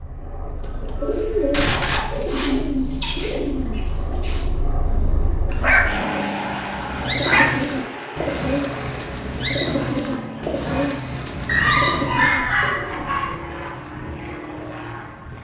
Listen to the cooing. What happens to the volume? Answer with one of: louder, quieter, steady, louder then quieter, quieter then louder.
quieter then louder.